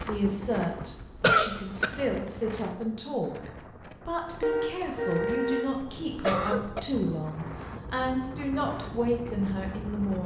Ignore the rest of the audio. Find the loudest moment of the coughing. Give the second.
1 s.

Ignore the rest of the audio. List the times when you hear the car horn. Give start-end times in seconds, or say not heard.
4.4-5.8.